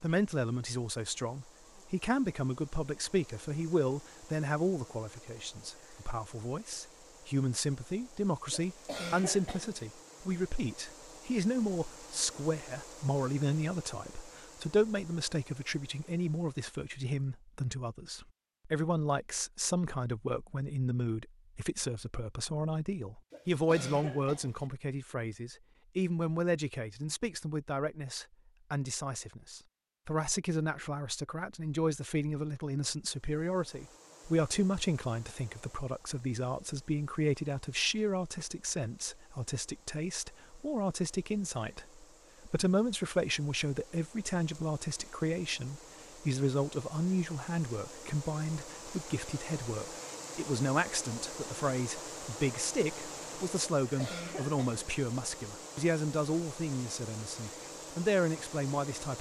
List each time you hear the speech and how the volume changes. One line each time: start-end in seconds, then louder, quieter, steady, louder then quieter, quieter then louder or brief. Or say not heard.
0.0-59.1 steady.